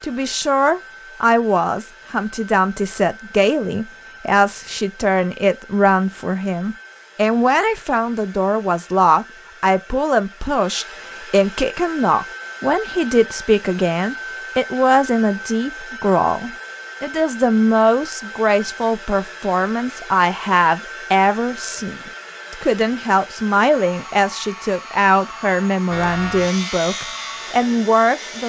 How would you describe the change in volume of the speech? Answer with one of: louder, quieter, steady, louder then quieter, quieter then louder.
steady.